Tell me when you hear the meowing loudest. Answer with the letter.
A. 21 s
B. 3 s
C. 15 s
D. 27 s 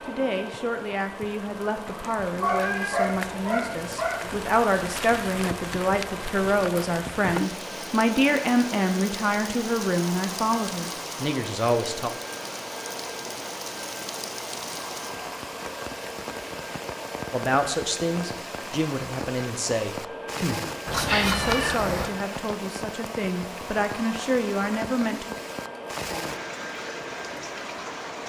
A.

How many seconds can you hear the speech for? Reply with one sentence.
The speech can be heard for 20 seconds in total.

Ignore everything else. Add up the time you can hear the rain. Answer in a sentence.
You can hear the rain for 28 seconds altogether.